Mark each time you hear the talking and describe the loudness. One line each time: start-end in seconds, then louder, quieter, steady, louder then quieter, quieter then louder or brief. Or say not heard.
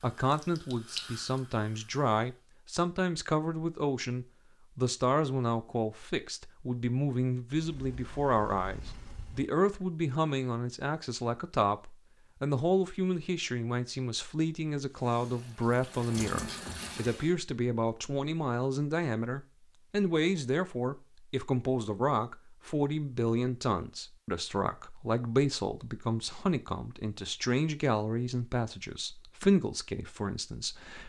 0.0-31.0 steady.